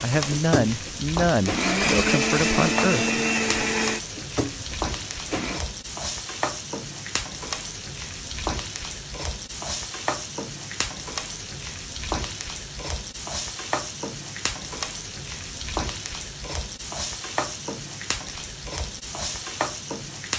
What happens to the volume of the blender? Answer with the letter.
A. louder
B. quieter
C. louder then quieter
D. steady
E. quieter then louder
C.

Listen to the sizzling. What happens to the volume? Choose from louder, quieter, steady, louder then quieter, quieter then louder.
steady.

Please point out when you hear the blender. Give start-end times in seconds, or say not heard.
0.0-5.6.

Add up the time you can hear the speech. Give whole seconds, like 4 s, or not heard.
4 s.